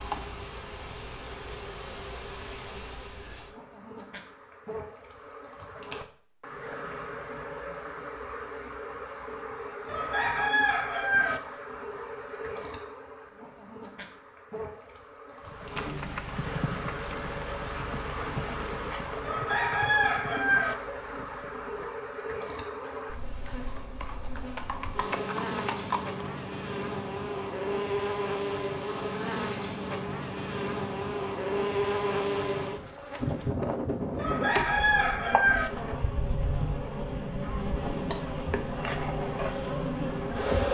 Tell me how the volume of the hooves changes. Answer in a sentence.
The loudness of the hooves goes down, then up.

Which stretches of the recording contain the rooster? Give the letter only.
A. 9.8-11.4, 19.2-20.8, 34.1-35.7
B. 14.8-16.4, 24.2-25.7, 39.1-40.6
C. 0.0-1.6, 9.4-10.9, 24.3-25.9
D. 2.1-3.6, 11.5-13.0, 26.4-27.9
A.